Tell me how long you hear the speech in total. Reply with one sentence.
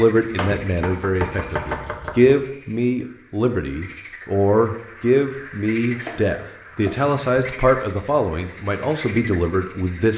You can hear the speech for 10 seconds altogether.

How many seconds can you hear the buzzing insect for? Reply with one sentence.
You can't hear the buzzing insect here.